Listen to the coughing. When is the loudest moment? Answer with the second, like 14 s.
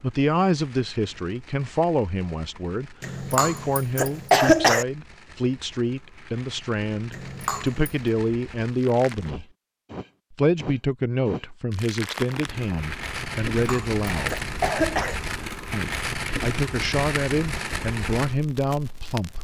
4 s.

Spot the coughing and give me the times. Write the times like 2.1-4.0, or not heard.
3.0-4.8, 7.1-8.0, 13.6-15.2.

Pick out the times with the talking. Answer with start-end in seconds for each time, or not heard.
0.0-9.4, 10.3-14.4, 15.7-19.4.